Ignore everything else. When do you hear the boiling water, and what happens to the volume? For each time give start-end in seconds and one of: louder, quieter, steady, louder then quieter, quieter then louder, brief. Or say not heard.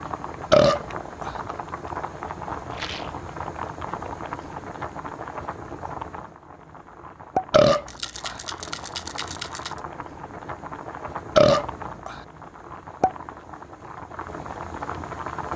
0.0-15.5 steady.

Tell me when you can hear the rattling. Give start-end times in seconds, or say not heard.
2.7-3.2, 7.8-9.8.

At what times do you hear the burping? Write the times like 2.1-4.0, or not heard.
0.5-1.4, 7.5-8.3, 11.3-12.2.